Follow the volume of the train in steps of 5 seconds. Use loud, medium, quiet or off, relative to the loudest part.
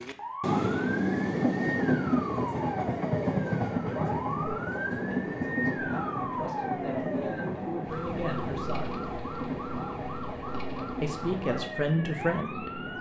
loud, medium, medium.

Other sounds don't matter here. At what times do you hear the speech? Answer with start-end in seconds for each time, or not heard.
3.9-9.0, 11.0-12.8.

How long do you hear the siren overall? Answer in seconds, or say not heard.
13 s.